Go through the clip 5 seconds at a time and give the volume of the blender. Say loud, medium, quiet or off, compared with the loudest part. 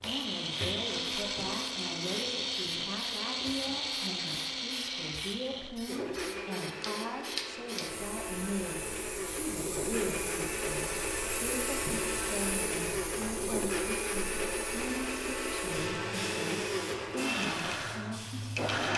loud, medium, loud, loud.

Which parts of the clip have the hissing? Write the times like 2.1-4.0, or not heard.
0.0-18.9.